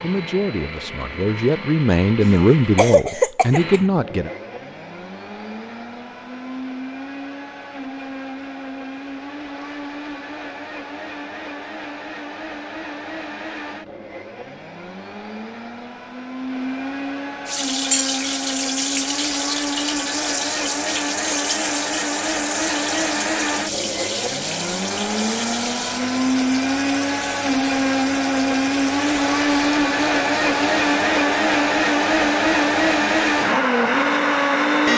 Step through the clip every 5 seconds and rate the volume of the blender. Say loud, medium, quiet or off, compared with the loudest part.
quiet, quiet, quiet, medium, medium, loud, loud.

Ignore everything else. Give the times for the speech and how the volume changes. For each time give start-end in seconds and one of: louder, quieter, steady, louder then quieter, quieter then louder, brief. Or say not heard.
0.0-4.3 louder.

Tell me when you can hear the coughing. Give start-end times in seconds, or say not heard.
2.2-3.8.